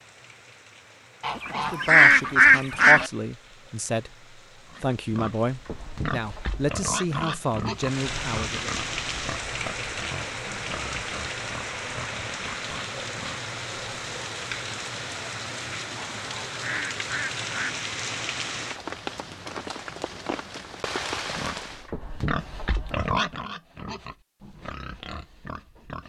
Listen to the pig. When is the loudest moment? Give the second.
23 s.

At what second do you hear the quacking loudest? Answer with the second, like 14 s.
2 s.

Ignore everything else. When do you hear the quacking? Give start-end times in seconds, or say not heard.
1.2-3.1, 16.2-17.8.